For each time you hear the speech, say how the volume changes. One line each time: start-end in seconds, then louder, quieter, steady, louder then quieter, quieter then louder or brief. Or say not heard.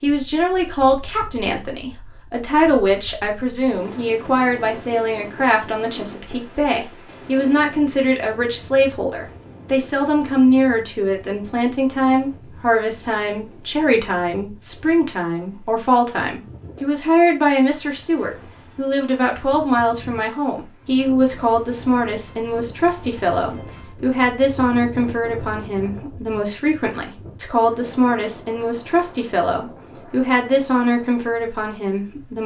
0.0-32.4 steady.